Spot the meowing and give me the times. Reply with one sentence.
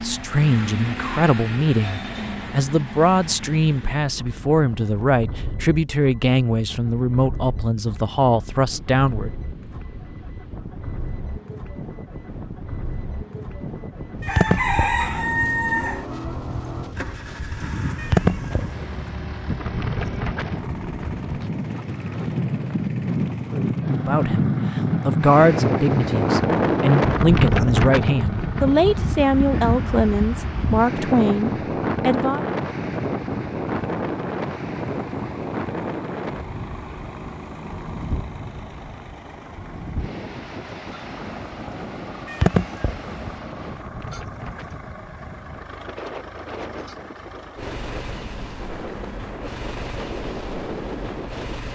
You can hear the meowing from 14.2 to 15.1 s, from 17.9 to 19.1 s and from 42.2 to 43.4 s.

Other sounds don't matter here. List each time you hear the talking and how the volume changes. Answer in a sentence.
The talking can be heard from 0.0 to 9.3 s, at a steady volume; and from 24.0 to 32.5 s, at a steady volume.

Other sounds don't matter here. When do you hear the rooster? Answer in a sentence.
The rooster can be heard from 14.2 to 16.1 s.